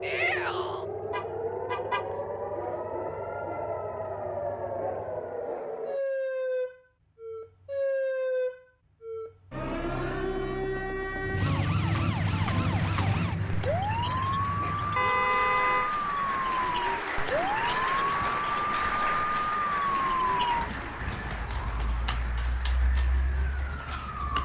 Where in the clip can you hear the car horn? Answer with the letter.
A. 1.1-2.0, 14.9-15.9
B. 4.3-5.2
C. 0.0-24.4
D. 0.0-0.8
A.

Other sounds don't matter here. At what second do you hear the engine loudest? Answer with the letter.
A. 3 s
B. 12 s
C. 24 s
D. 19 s
B.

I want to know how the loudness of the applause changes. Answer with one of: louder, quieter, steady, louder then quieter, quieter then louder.
louder then quieter.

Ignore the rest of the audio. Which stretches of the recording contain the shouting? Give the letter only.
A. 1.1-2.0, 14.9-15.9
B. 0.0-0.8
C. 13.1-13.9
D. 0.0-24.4
B.